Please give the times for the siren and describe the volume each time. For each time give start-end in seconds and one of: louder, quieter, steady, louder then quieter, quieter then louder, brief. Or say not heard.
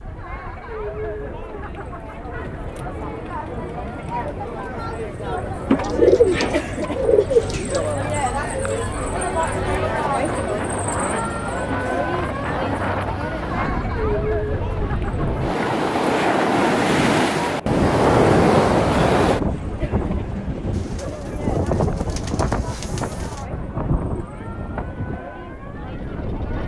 not heard.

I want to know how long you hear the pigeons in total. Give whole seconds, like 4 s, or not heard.
5 s.